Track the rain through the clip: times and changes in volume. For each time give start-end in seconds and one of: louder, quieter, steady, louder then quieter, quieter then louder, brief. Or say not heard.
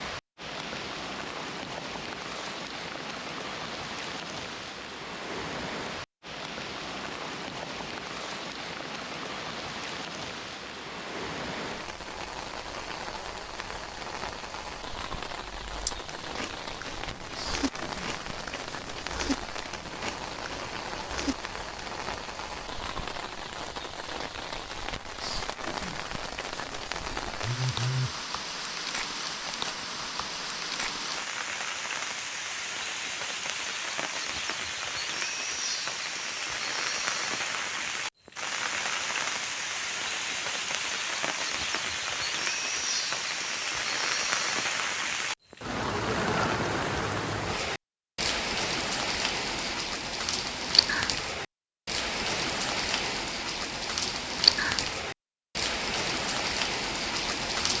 0.0-57.7 louder.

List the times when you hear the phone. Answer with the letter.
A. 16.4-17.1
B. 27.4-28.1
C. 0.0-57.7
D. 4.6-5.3
B.